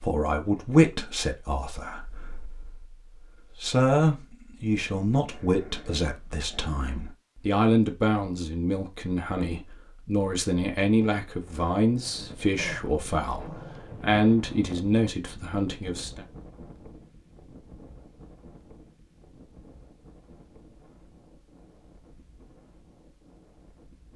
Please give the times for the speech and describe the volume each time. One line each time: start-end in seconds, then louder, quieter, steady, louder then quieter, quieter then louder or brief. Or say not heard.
0.0-16.2 steady.